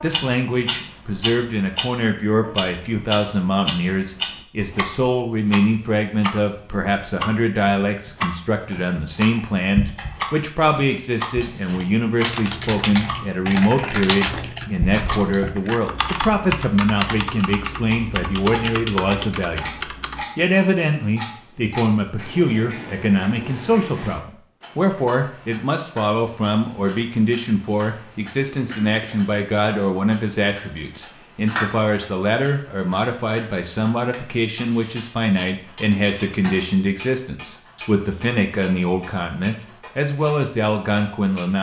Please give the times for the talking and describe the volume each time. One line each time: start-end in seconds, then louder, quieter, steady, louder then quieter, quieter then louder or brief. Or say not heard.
0.0-41.5 steady.